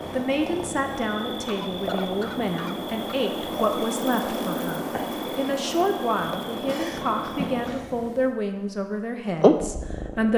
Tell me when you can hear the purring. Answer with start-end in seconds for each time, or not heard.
0.0-8.3, 9.3-10.3.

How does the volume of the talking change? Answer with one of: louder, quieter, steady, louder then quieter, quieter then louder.
steady.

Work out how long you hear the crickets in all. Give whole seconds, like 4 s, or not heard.
8 s.